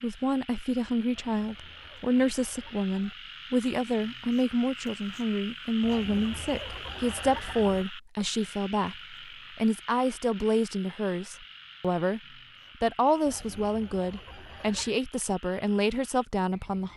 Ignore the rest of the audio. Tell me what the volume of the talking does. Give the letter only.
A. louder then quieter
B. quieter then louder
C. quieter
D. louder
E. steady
E.